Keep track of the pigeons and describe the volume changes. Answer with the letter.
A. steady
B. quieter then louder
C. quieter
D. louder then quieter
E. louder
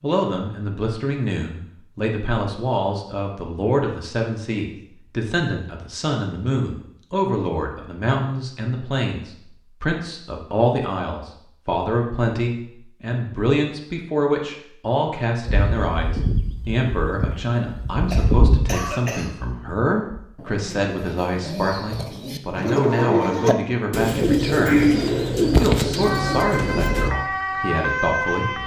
E.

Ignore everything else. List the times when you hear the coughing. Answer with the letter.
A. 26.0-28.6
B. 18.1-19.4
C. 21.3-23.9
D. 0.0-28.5
B.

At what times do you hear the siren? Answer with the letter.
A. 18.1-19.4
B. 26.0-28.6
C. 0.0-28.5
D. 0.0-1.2
B.